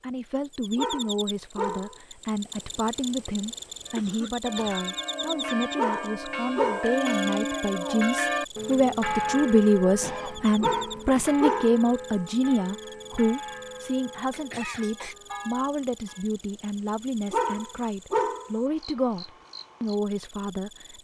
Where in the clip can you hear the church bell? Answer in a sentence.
The church bell can be heard from 3.9 to 16.3 s.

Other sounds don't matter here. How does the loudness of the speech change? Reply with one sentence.
The volume of the speech goes up, then down.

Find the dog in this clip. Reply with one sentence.
You can hear the dog from 0.8 to 1.9 s, from 5.8 to 7.0 s, from 10.6 to 11.8 s and from 17.3 to 18.5 s.